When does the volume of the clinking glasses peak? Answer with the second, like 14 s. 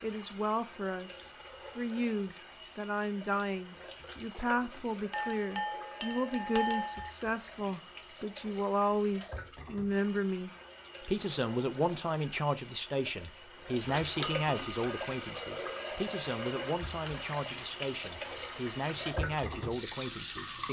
7 s.